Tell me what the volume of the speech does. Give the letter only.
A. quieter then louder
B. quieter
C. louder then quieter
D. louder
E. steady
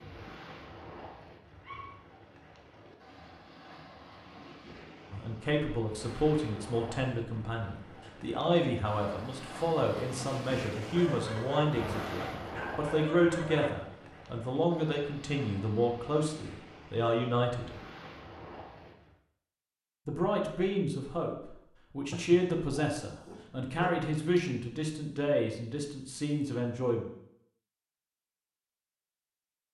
E.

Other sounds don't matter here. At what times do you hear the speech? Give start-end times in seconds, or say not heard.
5.1-17.7, 20.1-27.1.